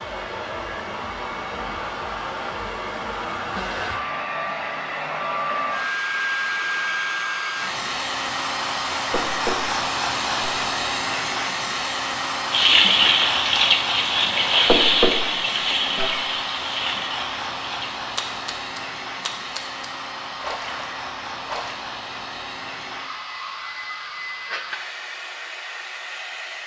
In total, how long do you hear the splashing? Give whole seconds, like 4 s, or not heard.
9 s.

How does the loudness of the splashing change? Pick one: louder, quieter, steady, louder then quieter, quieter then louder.
quieter.